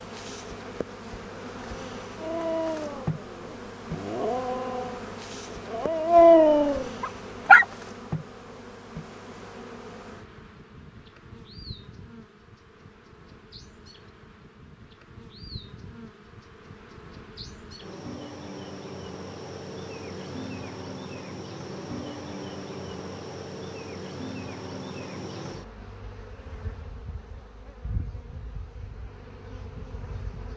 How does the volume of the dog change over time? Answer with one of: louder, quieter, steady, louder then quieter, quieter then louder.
louder.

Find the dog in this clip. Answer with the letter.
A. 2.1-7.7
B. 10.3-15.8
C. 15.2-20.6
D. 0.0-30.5
A.